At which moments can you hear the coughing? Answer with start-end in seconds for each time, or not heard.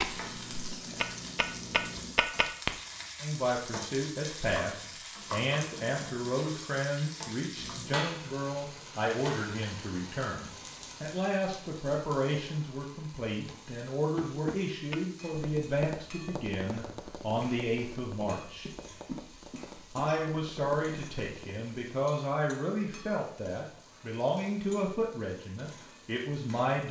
18.2-20.2.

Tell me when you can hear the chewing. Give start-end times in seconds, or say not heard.
not heard.